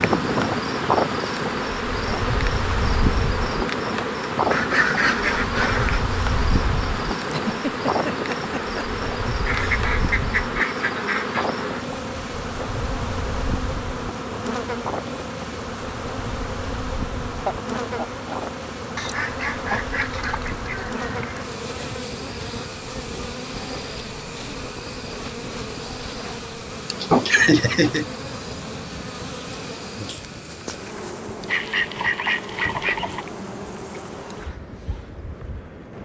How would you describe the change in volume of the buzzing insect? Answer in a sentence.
The loudness of the buzzing insect goes down.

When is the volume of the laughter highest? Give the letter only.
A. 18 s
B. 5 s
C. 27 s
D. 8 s
C.